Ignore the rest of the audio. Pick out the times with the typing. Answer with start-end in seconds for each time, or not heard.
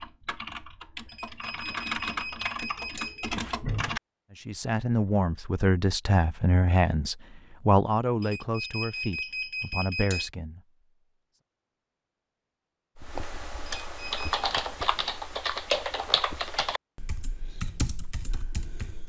0.0-4.0, 12.9-19.0.